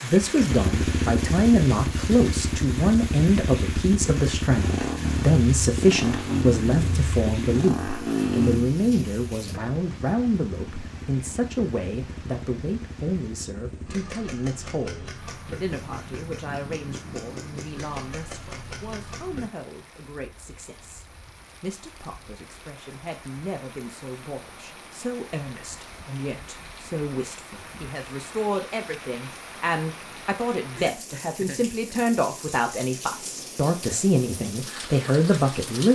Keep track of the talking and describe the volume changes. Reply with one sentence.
The volume of the talking goes down, then up.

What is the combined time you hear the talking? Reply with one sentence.
You can hear the talking for 36 seconds altogether.